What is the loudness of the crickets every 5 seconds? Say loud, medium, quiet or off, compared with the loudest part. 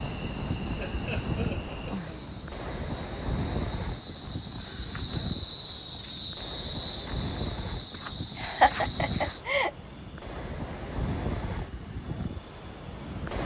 medium, loud, medium.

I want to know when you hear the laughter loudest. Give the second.
9 s.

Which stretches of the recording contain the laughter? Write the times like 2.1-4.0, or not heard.
0.8-2.3, 8.3-9.7.